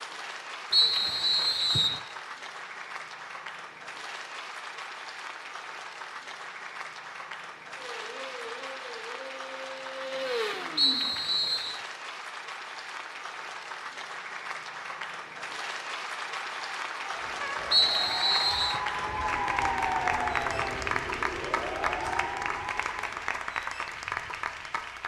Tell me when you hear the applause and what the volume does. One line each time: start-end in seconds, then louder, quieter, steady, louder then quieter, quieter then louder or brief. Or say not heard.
0.0-25.0 louder.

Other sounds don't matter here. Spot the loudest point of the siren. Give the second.
20 s.